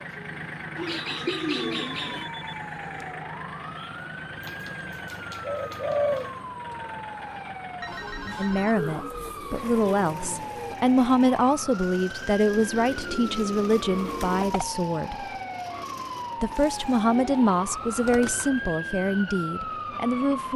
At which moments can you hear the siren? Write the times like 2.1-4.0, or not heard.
0.0-20.5.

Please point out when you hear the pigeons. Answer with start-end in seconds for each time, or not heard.
0.8-2.3, 4.4-6.3, 8.8-10.8, 12.5-14.6, 17.1-18.7.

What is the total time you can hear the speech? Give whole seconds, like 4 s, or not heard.
11 s.